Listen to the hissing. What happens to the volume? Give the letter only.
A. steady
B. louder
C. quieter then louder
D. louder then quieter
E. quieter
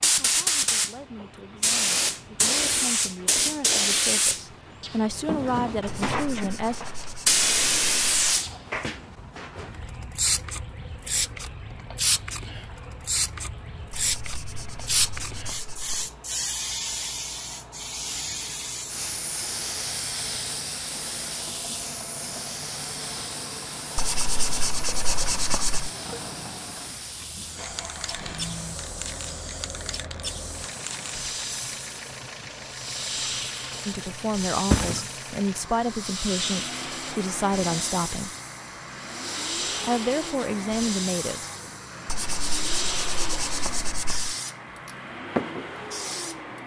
E.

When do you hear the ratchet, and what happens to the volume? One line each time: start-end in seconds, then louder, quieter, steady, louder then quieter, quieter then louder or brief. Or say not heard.
not heard.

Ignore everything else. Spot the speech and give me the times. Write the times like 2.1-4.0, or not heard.
0.0-6.8, 33.9-38.4, 39.8-41.5.